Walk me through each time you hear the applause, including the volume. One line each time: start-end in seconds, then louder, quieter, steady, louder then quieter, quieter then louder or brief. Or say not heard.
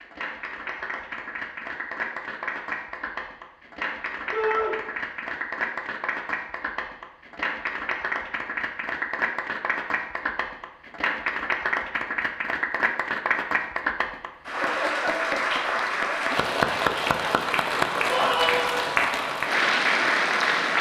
0.0-20.7 louder.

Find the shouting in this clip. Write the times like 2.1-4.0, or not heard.
4.3-4.8, 18.1-18.9.